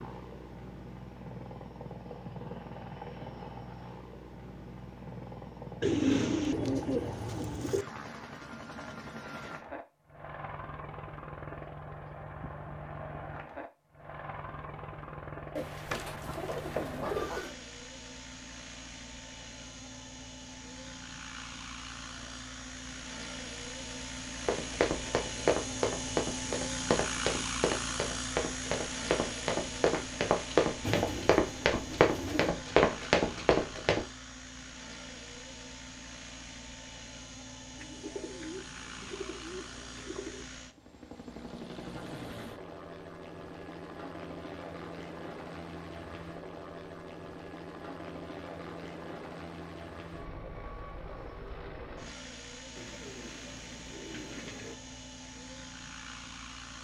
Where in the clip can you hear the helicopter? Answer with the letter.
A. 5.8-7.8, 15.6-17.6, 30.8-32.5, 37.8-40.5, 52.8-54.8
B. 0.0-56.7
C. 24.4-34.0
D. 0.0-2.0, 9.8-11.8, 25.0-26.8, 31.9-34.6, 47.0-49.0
B.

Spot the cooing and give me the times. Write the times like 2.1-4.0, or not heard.
5.8-7.8, 15.6-17.6, 30.8-32.5, 37.8-40.5, 52.8-54.8.